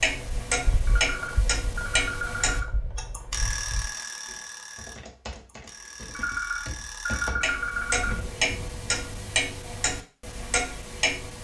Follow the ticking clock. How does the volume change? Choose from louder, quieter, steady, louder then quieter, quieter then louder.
quieter then louder.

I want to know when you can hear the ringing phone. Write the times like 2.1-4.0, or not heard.
0.8-2.6, 6.1-8.2.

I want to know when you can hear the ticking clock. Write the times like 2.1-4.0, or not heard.
0.0-11.4.